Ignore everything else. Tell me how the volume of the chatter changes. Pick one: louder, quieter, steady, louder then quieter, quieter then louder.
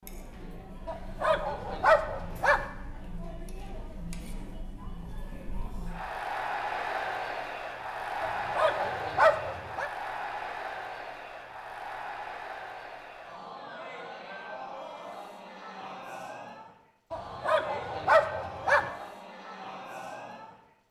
louder then quieter.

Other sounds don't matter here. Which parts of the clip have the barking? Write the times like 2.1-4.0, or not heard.
0.8-2.6, 8.2-9.9, 17.1-18.9.